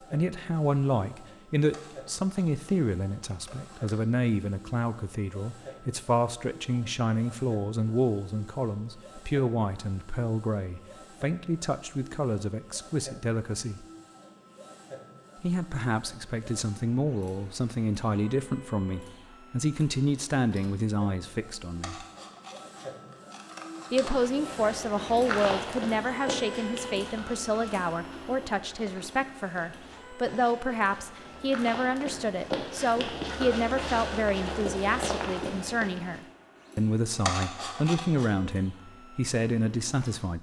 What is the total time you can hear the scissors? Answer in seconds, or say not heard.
6 s.